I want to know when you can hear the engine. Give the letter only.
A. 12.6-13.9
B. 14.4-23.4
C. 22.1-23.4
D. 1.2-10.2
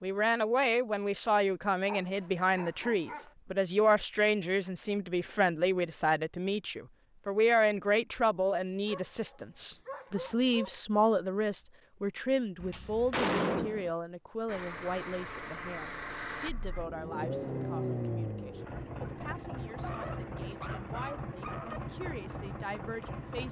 B.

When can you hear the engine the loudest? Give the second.
18 s.